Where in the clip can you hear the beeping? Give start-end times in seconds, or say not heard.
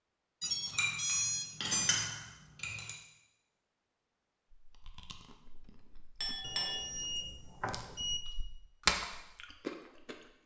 0.4-2.0, 6.4-8.2.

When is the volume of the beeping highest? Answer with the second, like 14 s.
1 s.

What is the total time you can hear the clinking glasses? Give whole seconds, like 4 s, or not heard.
3 s.